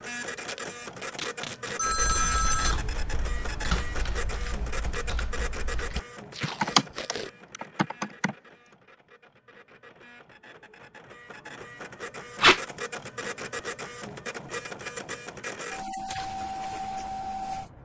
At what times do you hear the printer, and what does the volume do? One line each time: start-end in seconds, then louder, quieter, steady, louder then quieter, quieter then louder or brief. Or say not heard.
0.0-17.8 quieter then louder.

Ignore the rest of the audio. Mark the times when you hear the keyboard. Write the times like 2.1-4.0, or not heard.
1.9-8.3.